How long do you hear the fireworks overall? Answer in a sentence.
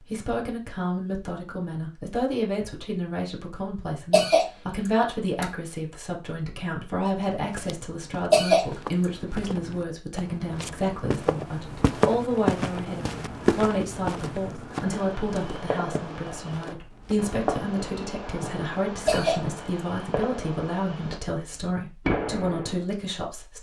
You can hear the fireworks for 8 seconds altogether.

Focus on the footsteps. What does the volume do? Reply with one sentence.
The volume of the footsteps goes up, then down.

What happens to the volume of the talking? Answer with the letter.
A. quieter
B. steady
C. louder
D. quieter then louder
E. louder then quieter
B.